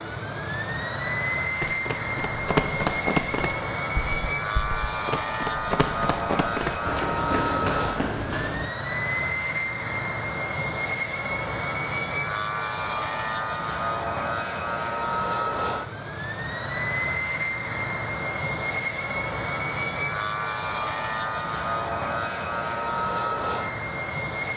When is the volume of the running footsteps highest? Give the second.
3 s.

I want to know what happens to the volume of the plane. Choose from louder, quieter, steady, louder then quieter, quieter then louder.
steady.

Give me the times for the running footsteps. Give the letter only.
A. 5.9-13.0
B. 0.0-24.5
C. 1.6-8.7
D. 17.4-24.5
C.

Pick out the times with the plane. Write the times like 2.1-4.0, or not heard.
0.0-24.5.